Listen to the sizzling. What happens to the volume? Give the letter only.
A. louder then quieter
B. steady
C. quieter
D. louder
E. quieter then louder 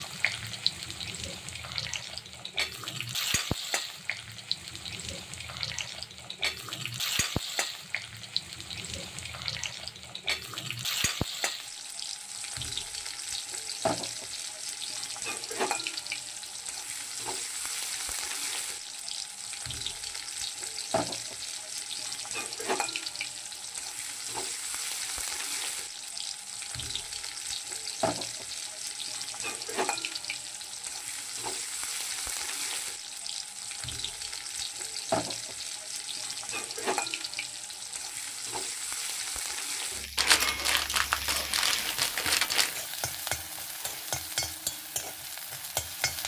B.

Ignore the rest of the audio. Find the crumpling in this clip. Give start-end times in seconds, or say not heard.
40.1-42.9.